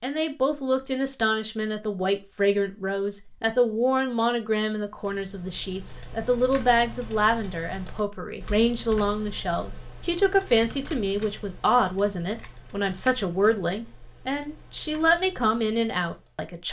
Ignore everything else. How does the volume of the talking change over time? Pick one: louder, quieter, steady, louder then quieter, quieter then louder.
steady.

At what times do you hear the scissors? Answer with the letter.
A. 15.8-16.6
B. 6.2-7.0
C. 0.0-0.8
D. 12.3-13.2
D.